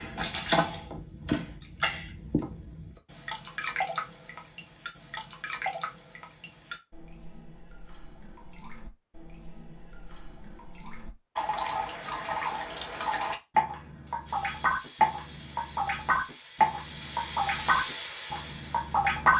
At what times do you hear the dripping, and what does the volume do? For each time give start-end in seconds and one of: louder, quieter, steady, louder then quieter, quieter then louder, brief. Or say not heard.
0.0-19.3 quieter then louder.